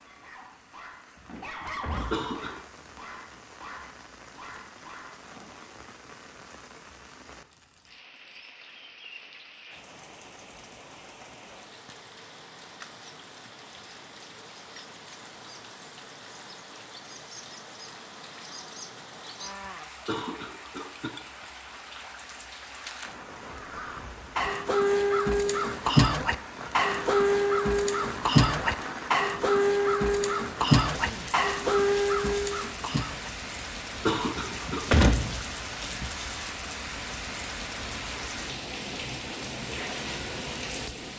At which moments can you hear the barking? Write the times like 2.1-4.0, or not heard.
0.0-5.7.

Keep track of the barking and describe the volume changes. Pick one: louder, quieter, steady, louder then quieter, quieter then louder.
louder then quieter.